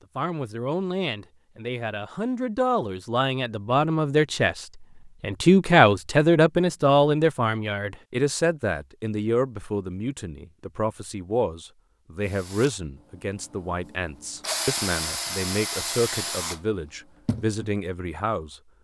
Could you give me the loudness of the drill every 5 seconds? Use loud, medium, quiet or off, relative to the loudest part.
off, off, loud, loud.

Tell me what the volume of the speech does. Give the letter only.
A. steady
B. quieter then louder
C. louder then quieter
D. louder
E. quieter
C.